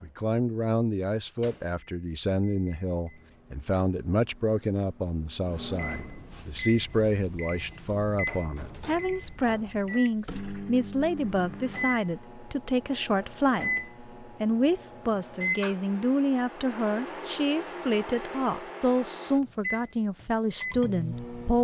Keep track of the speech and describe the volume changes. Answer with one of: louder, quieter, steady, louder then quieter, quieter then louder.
steady.